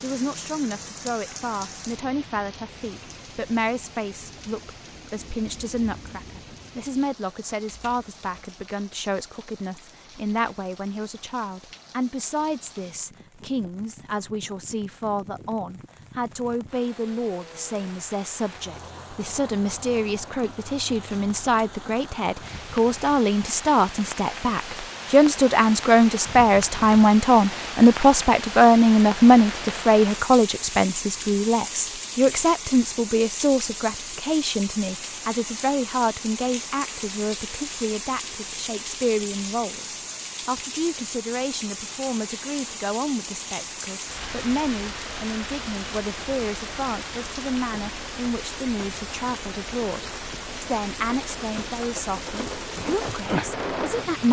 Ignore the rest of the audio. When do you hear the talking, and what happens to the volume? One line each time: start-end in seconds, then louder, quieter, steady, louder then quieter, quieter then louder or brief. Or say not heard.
0.0-54.2 louder then quieter.